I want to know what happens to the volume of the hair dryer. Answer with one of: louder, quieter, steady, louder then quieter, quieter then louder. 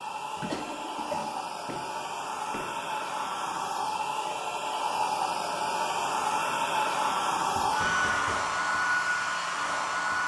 louder.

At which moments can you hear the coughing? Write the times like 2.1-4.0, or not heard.
0.3-1.4.